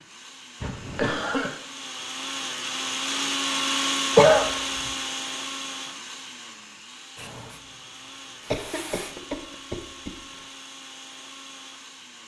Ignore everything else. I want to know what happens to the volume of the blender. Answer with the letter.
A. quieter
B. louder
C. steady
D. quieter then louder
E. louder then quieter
E.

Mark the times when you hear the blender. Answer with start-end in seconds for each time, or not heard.
0.0-12.2.